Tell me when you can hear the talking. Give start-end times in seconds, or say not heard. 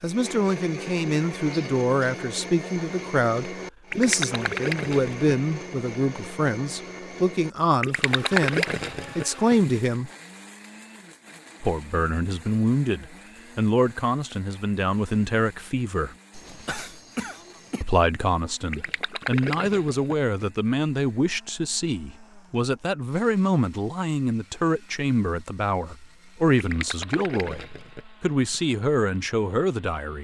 0.0-10.1, 11.6-16.1, 17.8-30.1.